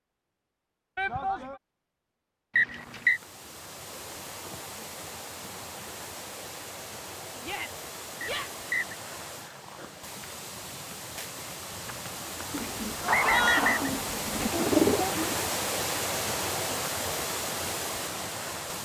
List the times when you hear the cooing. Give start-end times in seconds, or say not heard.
12.5-15.5.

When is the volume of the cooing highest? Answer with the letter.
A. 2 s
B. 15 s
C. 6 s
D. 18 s
B.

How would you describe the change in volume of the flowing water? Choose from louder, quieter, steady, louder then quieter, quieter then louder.
louder.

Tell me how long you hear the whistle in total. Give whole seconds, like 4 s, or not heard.
2 s.